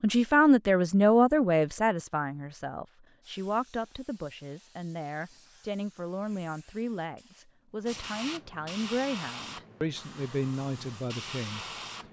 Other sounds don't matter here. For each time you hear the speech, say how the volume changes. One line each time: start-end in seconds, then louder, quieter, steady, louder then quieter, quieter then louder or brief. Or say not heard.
0.0-12.0 quieter.